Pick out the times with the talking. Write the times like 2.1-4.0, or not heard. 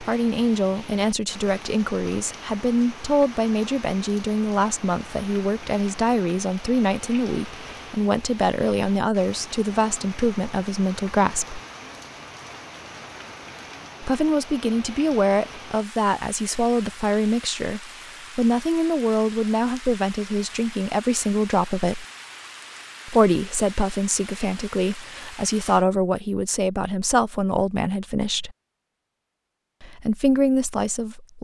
0.0-11.6, 14.0-22.1, 23.1-28.6, 29.8-31.3.